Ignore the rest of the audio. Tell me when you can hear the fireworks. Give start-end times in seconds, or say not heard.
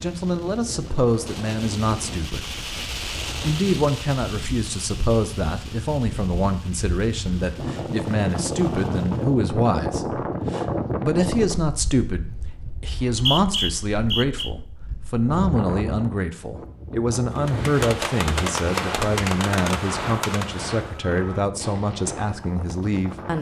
0.0-9.4, 17.4-23.3.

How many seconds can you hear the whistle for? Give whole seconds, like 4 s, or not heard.
2 s.